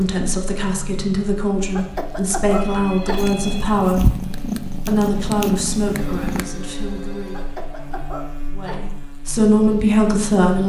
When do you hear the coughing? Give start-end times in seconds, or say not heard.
1.6-3.3, 7.2-8.8.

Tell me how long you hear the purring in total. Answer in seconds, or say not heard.
3 s.